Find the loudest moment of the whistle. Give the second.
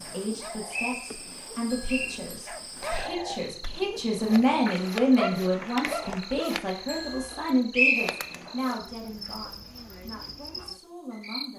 8 s.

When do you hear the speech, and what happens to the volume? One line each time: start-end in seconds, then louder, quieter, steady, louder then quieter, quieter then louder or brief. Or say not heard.
0.0-11.5 louder then quieter.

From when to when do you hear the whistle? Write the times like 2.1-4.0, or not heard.
0.7-2.2, 7.7-8.5.